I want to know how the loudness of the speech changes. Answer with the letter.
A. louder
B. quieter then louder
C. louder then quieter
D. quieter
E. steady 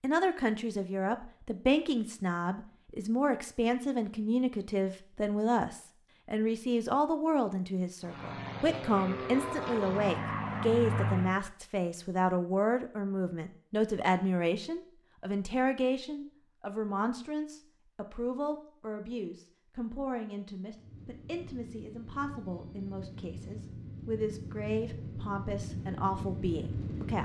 D.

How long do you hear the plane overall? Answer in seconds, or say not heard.
10 s.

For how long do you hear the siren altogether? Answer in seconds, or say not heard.
not heard.